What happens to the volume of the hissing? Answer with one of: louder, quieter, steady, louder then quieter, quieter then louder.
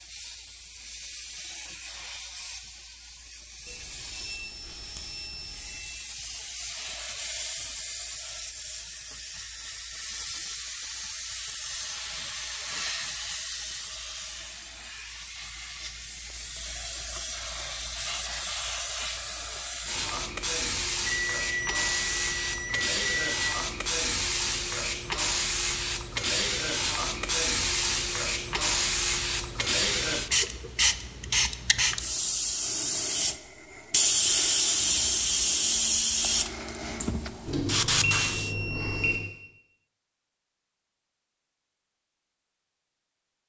louder.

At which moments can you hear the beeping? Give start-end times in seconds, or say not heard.
3.6-5.9, 21.1-23.3, 37.5-39.1.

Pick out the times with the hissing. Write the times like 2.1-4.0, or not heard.
0.0-38.5.